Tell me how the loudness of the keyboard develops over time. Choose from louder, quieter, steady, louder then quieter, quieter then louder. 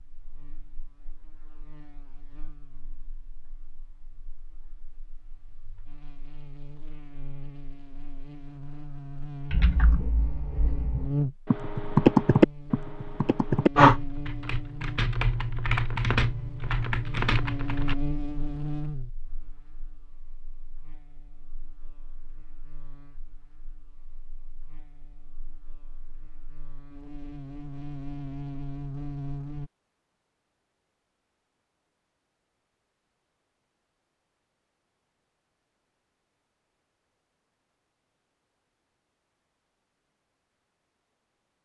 louder then quieter.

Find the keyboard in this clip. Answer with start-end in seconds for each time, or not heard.
9.5-17.9.